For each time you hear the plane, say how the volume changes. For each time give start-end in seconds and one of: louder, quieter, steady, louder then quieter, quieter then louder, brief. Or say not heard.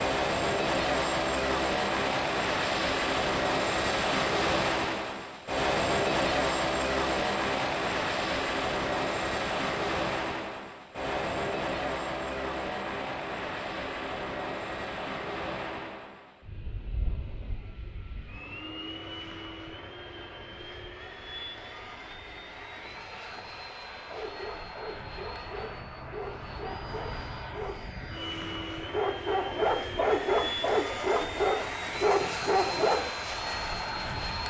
0.0-34.4 quieter then louder.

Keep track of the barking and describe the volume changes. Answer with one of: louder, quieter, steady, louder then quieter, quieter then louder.
louder.